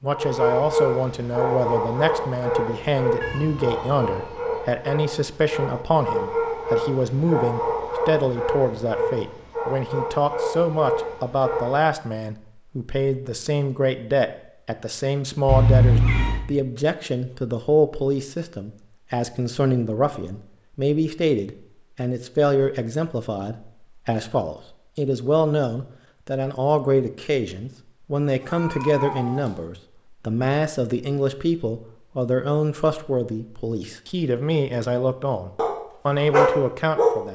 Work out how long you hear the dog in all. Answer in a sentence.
The dog can be heard for 13 seconds in total.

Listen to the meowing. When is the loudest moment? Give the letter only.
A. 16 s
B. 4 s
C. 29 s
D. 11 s
A.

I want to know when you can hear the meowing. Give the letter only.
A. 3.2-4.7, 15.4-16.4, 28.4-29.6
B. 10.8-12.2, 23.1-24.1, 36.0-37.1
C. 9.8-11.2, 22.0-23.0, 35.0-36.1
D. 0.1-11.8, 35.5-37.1
A.